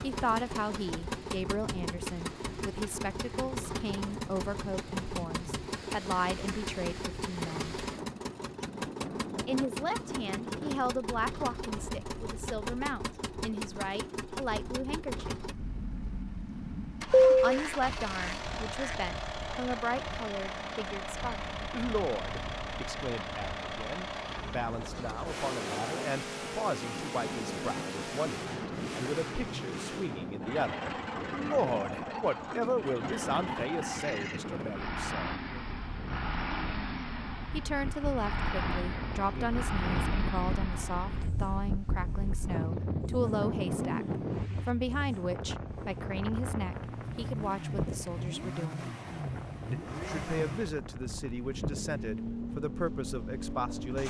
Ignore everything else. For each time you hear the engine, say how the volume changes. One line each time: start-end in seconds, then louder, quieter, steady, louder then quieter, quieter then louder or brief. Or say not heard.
0.0-54.0 steady.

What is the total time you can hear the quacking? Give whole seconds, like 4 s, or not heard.
2 s.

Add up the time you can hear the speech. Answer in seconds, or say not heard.
47 s.